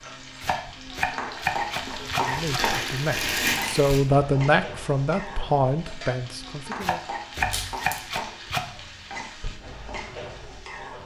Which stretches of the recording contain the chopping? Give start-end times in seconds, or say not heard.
0.4-2.6, 6.8-8.7.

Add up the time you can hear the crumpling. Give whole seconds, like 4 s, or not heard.
2 s.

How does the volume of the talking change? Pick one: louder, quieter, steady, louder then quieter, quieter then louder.
louder then quieter.